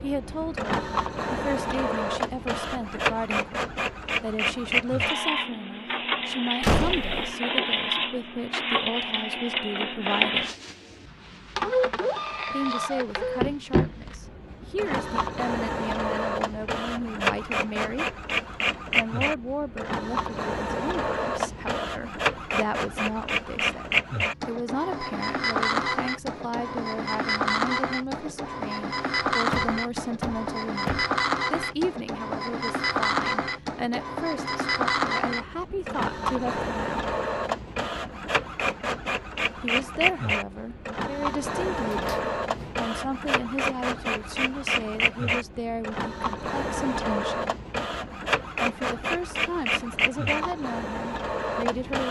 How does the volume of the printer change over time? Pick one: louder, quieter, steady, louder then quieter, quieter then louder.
steady.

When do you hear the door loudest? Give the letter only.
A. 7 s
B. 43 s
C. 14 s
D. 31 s
A.